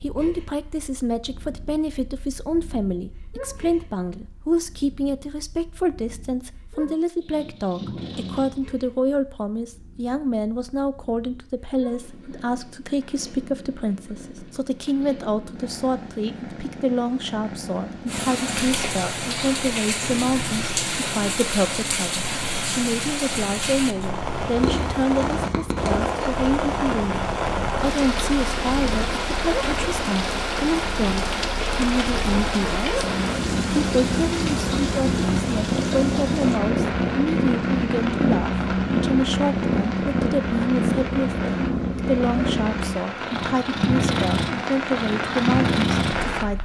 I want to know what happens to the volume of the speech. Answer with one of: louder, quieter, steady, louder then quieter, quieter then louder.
steady.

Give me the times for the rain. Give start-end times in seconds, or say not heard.
18.1-46.6.